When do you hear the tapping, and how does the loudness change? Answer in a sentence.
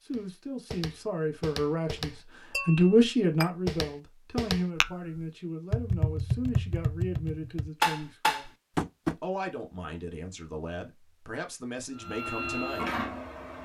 The tapping can be heard from 0.1 to 9.2 s, getting louder.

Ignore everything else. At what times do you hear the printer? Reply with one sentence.
The printer can be heard from 11.9 to 13.6 s.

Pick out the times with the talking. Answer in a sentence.
You can hear the talking from 0.0 to 8.5 s and from 9.2 to 13.1 s.